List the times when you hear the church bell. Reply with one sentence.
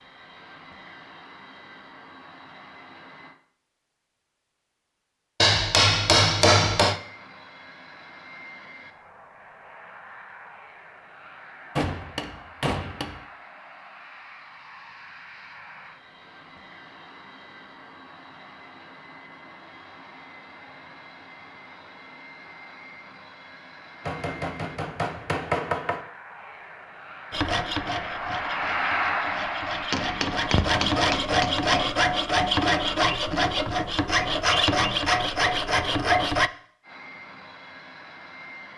The church bell can't be heard in this clip.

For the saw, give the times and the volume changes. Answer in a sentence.
The saw can be heard from 27.3 to 36.5 s, getting louder.